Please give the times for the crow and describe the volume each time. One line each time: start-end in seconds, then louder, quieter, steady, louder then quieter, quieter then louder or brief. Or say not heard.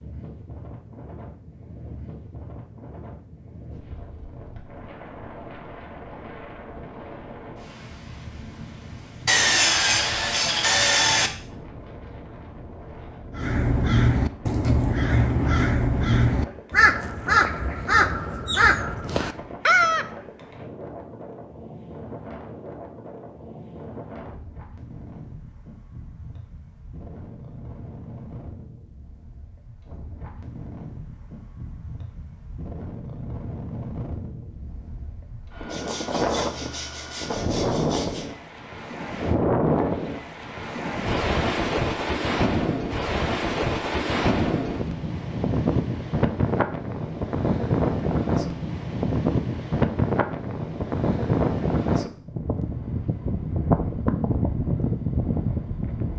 13.3-20.1 steady.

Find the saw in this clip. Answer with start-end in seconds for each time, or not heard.
9.2-11.3, 35.6-38.2.